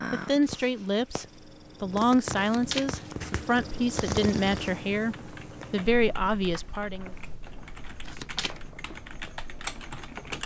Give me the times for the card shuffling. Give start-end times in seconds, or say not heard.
2.4-3.1, 8.1-8.6.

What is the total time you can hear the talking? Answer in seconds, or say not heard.
7 s.